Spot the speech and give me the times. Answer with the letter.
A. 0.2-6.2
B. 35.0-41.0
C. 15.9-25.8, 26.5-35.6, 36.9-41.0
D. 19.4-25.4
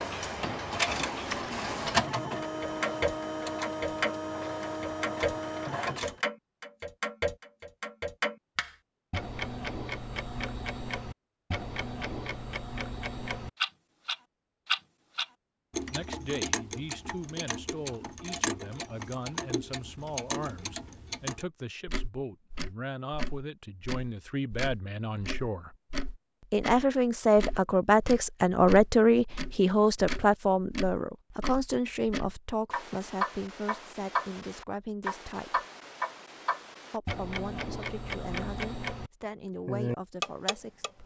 C.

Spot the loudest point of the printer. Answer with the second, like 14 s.
2 s.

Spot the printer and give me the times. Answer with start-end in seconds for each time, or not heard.
0.2-6.2.